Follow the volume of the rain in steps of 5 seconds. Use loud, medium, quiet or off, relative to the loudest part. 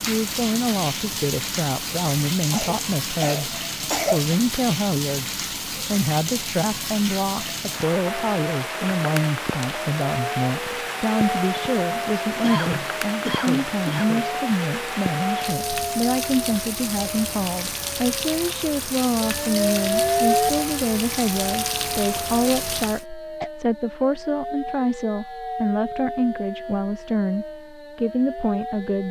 loud, loud, loud, loud, loud, off.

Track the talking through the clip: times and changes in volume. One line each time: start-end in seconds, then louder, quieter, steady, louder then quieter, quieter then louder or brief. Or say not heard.
0.1-29.0 steady.